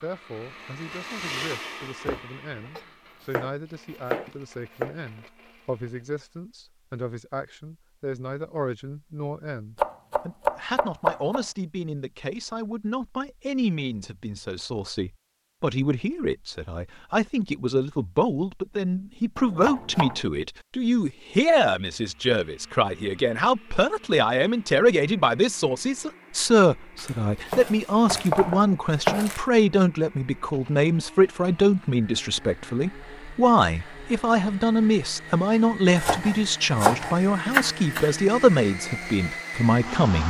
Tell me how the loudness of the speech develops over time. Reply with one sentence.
The volume of the speech goes up.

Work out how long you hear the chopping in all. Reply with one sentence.
You can hear the chopping for 10 seconds altogether.